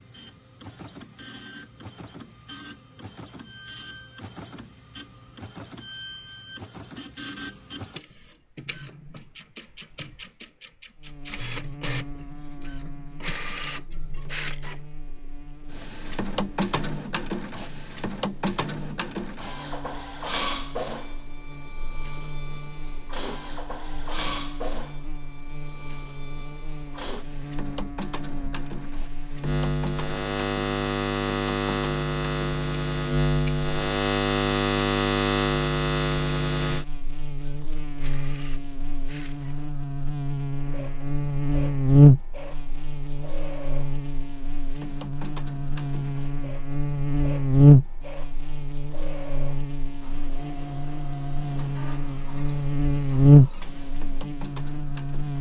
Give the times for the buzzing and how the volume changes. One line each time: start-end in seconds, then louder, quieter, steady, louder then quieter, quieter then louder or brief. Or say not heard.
10.9-55.3 louder.